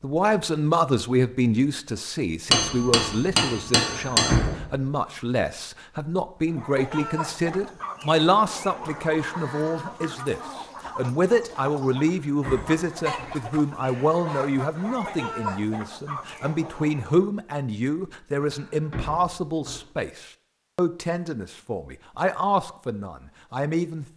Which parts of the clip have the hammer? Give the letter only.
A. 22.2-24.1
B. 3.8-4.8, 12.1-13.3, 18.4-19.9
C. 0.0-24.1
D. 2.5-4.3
D.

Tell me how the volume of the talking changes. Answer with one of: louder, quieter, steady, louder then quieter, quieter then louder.
steady.